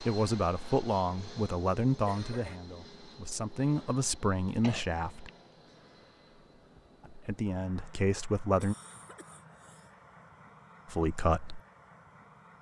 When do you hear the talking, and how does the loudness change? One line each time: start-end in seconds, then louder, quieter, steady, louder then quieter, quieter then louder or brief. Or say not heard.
0.0-5.3 quieter then louder
7.1-8.8 brief
10.9-11.6 brief.